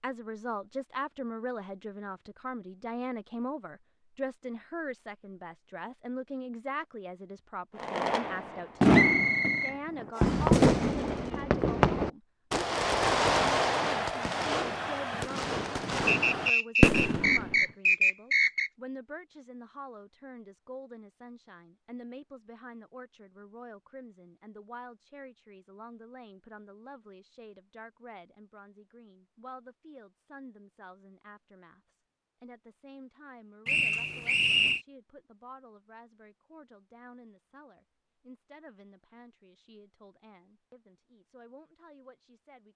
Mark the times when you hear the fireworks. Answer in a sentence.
You can hear the fireworks from 7.8 to 17.6 s.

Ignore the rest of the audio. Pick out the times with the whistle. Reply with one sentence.
The whistle can be heard from 8.9 to 10.5 s, from 16.1 to 18.7 s and from 33.6 to 34.8 s.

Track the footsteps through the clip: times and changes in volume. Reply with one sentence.
The footsteps can't be heard in this clip.